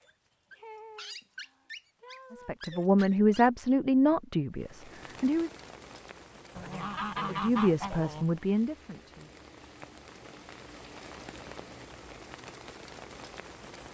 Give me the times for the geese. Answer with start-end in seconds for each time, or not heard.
6.5-8.2.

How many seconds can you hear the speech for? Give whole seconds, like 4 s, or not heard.
5 s.